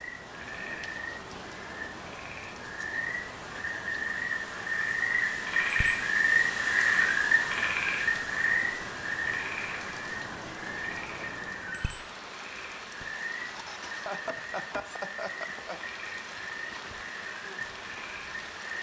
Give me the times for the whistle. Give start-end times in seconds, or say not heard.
not heard.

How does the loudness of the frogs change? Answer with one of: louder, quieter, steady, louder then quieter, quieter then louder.
louder then quieter.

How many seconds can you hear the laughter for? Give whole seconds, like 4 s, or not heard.
2 s.